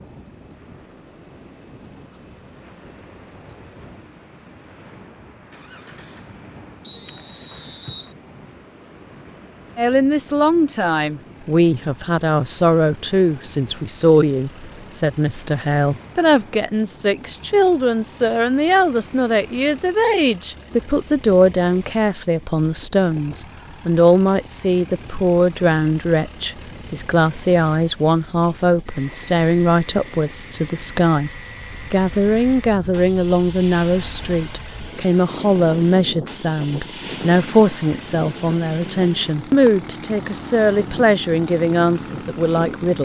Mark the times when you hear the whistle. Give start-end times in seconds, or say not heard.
6.8-8.2.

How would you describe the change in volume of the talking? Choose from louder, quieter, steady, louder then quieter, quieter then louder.
steady.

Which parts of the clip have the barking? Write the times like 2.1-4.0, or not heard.
not heard.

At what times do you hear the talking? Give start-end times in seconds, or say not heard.
9.8-42.9.